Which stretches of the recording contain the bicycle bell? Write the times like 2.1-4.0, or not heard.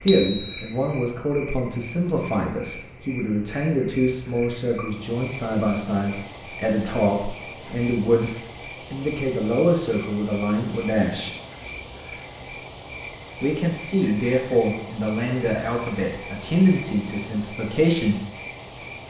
0.1-0.8, 14.0-14.7.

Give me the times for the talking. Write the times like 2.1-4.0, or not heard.
0.0-11.3, 13.4-18.2.